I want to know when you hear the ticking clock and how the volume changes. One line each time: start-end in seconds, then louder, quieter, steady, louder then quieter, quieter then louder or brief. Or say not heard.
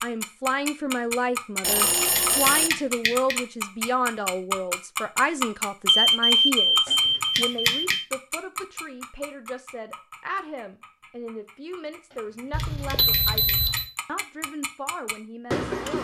0.0-16.0 quieter then louder.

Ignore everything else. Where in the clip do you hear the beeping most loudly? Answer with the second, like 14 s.
6 s.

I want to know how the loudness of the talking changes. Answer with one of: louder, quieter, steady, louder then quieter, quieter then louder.
quieter.